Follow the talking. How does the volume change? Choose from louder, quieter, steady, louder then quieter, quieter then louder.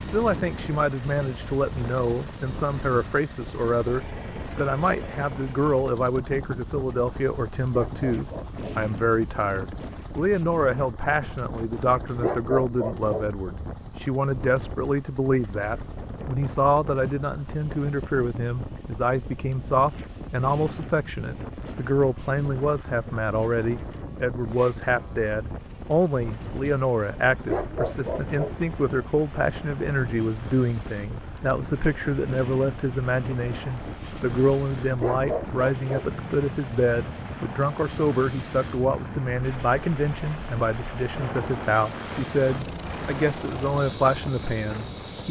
steady.